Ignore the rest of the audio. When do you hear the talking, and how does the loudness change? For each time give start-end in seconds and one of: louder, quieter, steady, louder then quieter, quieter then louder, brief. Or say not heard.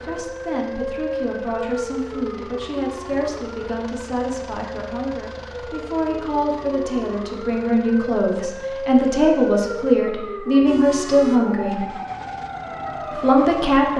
0.0-11.9 louder
13.1-13.9 brief.